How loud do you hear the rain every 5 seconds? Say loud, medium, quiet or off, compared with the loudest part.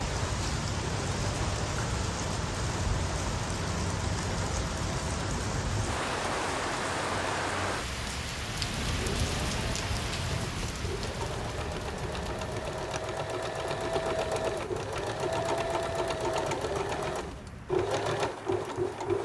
loud, loud, medium, quiet.